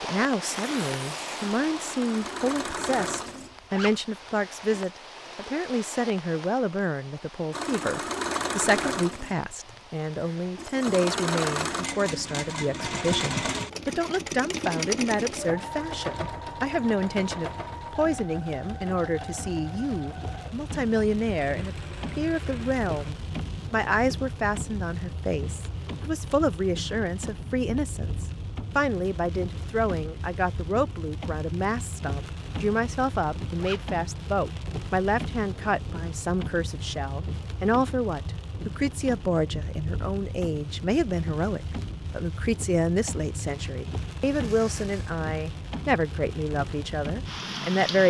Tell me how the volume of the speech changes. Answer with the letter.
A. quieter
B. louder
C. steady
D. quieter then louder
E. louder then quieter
C.